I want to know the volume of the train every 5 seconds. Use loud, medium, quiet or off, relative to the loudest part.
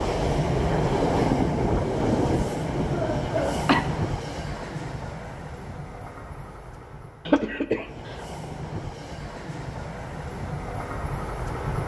loud, quiet, medium.